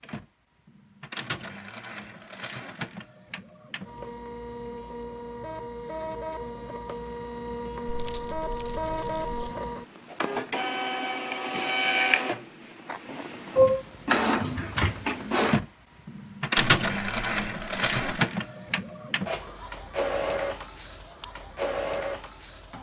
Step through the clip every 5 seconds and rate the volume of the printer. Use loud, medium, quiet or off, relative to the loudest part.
quiet, medium, loud, loud, medium.